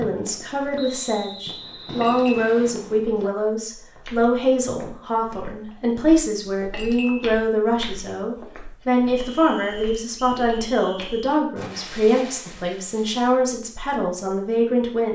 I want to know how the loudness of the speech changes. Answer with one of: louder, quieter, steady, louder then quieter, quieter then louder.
steady.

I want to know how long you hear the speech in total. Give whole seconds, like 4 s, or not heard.
15 s.